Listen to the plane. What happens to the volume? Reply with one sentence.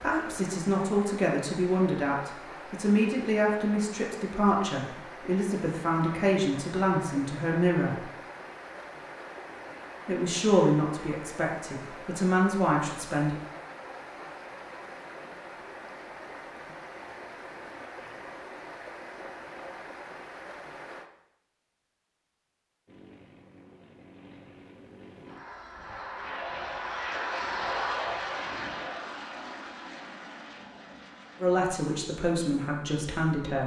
The volume of the plane goes up, then down.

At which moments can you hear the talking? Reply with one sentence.
You can hear the talking from 0.0 to 8.1 s, from 10.1 to 13.3 s and from 31.4 to 33.6 s.